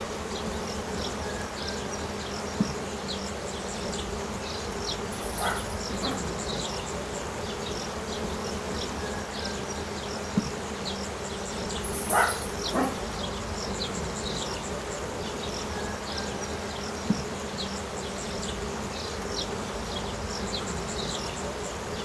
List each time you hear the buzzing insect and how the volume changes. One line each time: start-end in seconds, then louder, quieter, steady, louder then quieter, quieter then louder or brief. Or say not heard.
0.0-22.0 steady.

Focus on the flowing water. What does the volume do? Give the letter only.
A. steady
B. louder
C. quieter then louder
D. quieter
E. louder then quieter
A.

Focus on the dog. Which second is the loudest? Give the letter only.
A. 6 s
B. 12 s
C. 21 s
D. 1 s
B.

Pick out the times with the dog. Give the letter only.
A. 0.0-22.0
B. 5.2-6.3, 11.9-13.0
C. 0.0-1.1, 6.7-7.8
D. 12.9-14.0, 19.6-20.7
B.